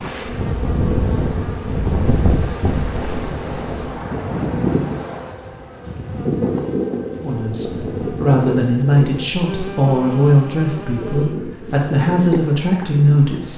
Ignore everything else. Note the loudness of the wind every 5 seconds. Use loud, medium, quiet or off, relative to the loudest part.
loud, loud, medium.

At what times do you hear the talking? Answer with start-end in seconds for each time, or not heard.
7.2-13.5.